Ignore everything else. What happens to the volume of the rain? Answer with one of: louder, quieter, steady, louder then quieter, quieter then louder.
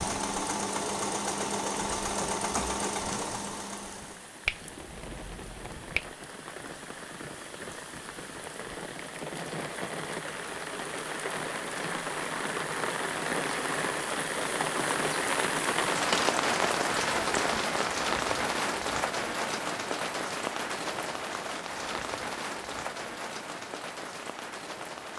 louder then quieter.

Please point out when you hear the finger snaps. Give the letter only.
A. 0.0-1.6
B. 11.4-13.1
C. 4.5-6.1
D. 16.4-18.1
C.